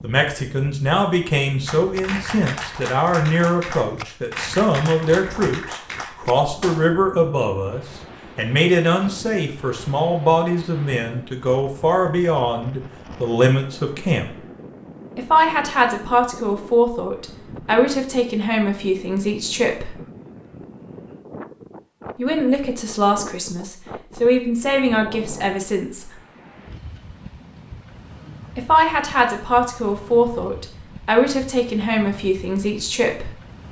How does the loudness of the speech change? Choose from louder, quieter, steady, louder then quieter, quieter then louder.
steady.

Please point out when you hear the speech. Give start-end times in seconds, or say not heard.
0.0-14.2, 15.2-19.9, 22.1-26.1, 28.6-33.3.